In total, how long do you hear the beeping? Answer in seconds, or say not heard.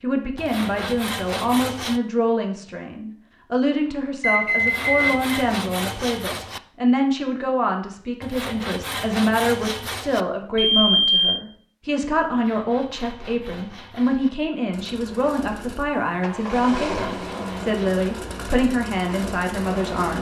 2 s.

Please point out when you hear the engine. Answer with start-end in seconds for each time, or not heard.
14.7-20.1.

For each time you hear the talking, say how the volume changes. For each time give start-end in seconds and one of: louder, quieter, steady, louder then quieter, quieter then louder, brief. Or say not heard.
0.0-20.1 steady.